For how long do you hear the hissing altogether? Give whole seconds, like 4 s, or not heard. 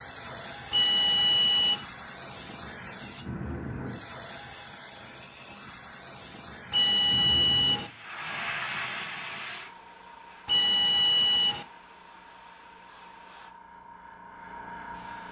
15 s.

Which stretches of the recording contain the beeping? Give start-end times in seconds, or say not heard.
0.7-1.8, 6.7-7.9, 10.4-11.7.